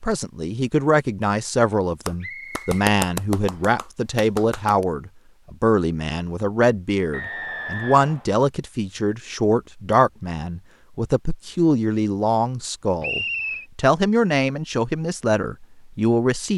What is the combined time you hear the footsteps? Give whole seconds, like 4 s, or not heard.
not heard.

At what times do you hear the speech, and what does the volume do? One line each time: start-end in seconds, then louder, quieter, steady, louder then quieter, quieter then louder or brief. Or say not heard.
0.0-16.5 steady.